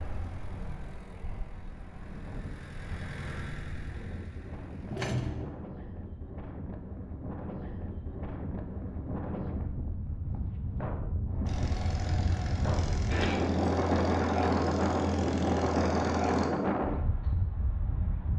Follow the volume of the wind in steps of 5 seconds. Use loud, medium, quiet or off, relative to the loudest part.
quiet, medium, loud, loud.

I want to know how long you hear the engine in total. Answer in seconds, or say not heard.
10 s.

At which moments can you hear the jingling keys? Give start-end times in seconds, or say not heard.
4.9-5.5, 13.1-13.6.